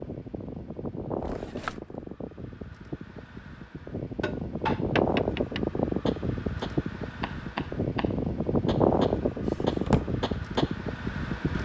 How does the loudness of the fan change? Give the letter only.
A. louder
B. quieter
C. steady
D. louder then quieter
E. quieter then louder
A.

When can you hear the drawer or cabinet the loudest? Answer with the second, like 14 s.
10 s.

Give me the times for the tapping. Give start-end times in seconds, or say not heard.
4.2-10.8.